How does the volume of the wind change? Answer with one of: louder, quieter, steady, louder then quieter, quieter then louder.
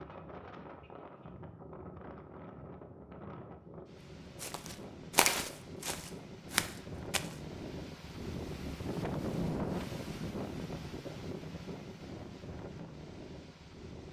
louder then quieter.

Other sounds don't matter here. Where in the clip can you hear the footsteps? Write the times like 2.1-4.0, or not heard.
4.4-7.3.